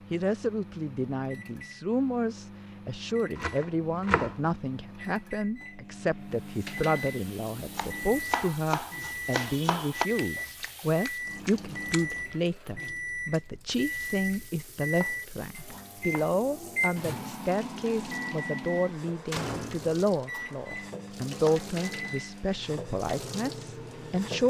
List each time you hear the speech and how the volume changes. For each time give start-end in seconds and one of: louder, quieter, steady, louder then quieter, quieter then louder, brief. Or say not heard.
0.1-24.4 steady.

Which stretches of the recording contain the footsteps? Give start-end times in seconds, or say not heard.
not heard.